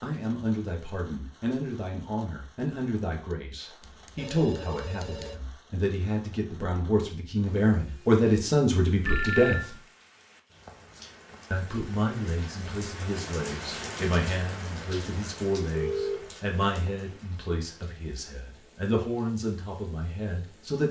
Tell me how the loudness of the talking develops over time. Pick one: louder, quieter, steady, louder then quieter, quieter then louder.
louder then quieter.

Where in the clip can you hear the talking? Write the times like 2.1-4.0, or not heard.
0.0-9.8, 11.5-20.8.